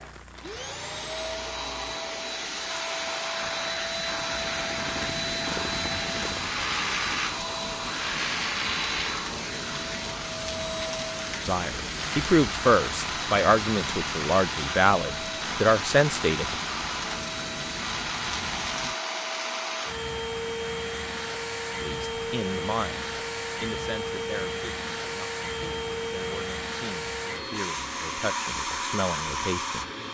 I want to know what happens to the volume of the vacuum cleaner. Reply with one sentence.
The loudness of the vacuum cleaner stays about the same.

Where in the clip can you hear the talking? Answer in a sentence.
You can hear the talking from 11.4 to 16.6 s and from 21.8 to 29.9 s.